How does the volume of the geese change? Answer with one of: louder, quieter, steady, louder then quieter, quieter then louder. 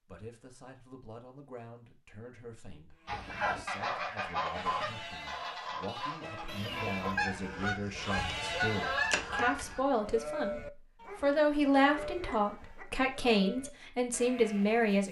quieter then louder.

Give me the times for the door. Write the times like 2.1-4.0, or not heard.
not heard.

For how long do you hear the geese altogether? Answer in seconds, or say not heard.
7 s.